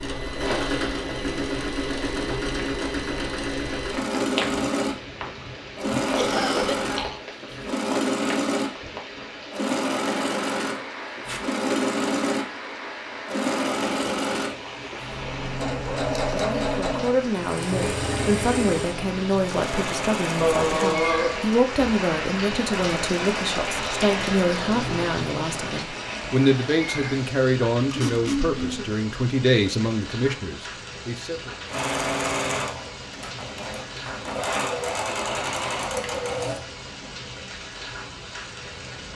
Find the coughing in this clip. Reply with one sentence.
You can hear the coughing from 6.2 to 7.2 s, from 20.4 to 21.6 s and from 27.9 to 28.9 s.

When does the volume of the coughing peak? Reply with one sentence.
The volume of the coughing peaks at 21 seconds.